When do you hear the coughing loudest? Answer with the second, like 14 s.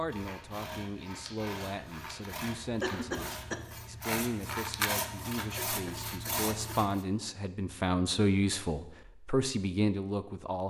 3 s.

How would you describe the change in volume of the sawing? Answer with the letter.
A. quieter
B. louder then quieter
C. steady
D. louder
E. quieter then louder
D.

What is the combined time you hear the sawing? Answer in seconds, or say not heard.
7 s.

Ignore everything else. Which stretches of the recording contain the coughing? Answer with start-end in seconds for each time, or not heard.
2.8-3.6, 5.5-6.8.